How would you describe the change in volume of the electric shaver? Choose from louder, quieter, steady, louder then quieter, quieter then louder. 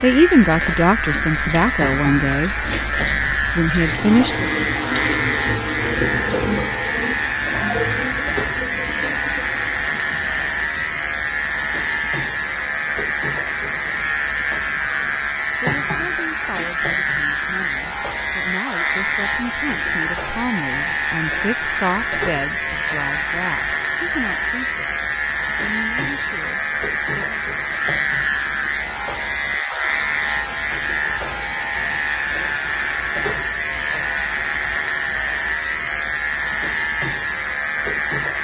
steady.